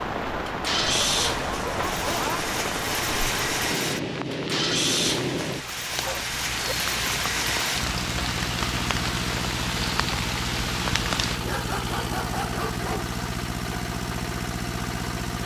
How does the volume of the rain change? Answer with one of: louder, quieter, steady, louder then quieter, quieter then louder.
steady.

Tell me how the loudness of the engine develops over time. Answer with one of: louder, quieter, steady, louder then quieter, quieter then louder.
steady.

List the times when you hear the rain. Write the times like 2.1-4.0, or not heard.
0.0-11.4.